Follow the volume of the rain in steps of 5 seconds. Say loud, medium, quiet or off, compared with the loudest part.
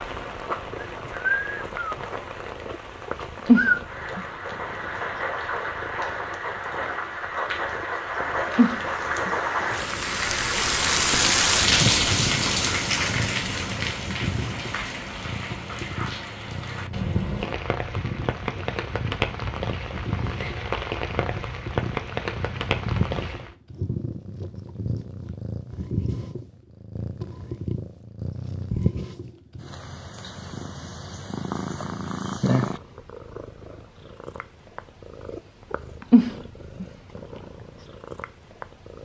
medium, medium, loud, medium, medium, off, off, off.